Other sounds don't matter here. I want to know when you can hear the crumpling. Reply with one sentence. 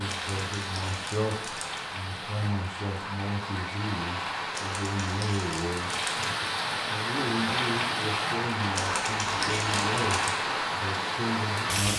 The crumpling can be heard from 0.1 to 1.8 s, from 4.5 to 6.3 s and from 8.8 to 10.3 s.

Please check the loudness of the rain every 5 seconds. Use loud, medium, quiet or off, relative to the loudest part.
medium, loud, loud.